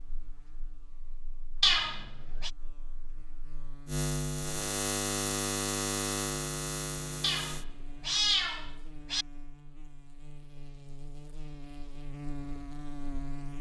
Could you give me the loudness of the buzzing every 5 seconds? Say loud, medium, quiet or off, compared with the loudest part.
loud, loud, medium.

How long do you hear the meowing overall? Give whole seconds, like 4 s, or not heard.
3 s.